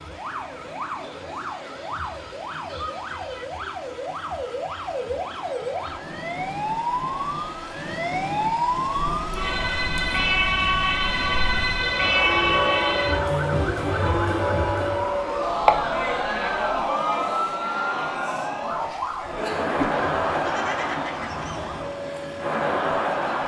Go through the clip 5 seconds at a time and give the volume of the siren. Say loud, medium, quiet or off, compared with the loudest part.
medium, loud, loud, loud, medium.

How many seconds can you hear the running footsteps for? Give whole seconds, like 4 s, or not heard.
not heard.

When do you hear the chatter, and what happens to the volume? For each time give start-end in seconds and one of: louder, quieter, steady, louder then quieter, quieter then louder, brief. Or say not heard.
8.9-23.4 louder.